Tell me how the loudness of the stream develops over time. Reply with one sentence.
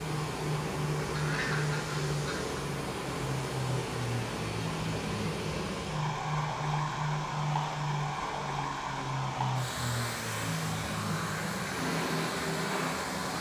The loudness of the stream stays about the same.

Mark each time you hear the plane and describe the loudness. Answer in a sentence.
The plane can be heard from 0.0 to 13.3 s, at a steady volume.